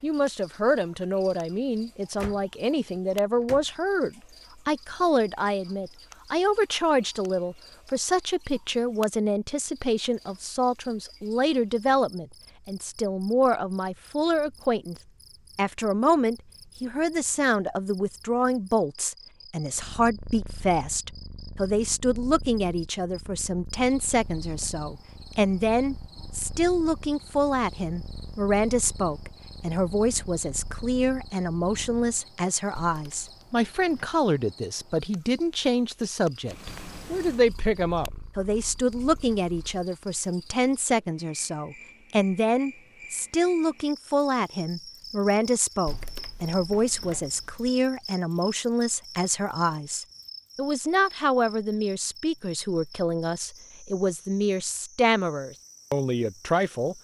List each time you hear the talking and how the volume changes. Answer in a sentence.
You can hear the talking from 0.0 to 14.9 s, at a steady volume; and from 15.6 to 56.9 s, at a steady volume.